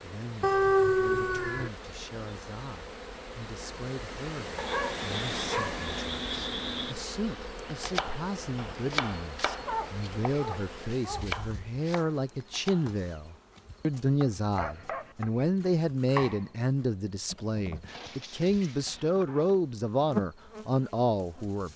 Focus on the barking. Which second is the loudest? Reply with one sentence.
The volume of the barking peaks at 1 second.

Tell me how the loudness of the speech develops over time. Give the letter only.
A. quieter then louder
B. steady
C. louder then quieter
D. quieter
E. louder
E.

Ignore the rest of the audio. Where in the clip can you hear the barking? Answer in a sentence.
You can hear the barking from 0.4 to 1.7 s, from 4.5 to 7.0 s, from 9.7 to 11.2 s, from 14.6 to 15.2 s and from 17.9 to 19.6 s.